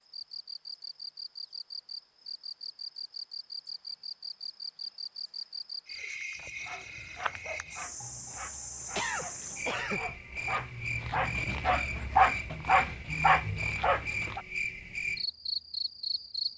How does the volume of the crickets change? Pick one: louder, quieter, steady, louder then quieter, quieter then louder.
louder.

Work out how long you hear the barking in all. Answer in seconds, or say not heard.
8 s.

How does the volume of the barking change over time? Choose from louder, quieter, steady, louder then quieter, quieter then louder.
louder.